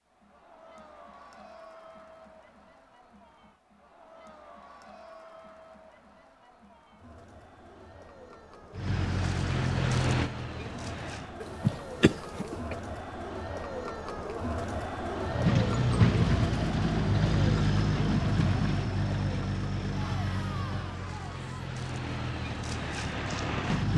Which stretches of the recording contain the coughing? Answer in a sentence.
You can hear the coughing from 11.4 to 12.8 s.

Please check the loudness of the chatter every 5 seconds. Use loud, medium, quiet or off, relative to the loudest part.
quiet, quiet, loud, loud, medium.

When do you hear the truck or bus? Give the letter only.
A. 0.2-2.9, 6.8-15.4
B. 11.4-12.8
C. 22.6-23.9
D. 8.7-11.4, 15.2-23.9
D.